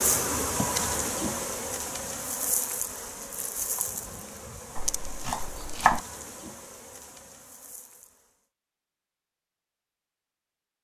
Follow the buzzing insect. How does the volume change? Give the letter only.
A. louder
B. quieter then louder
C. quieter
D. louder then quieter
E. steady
C.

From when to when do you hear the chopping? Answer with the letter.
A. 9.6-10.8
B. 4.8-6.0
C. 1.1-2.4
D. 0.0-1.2
B.